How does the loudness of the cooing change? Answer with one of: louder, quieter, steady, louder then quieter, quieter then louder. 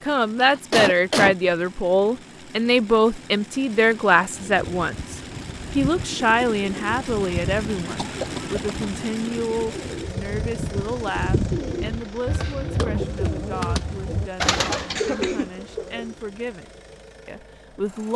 louder.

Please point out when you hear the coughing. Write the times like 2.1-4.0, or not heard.
0.4-1.4, 8.0-8.9, 14.9-15.5.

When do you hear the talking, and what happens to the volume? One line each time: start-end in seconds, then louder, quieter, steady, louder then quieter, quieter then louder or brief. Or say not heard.
0.1-5.2 steady
5.8-16.6 quieter
17.2-18.1 brief.